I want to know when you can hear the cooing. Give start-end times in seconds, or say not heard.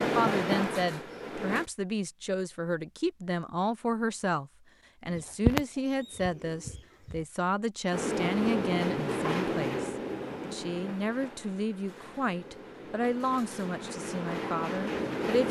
5.0-7.2.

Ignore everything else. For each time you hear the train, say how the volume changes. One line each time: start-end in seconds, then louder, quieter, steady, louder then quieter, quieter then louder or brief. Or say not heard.
0.0-1.6 brief
7.9-15.4 quieter then louder.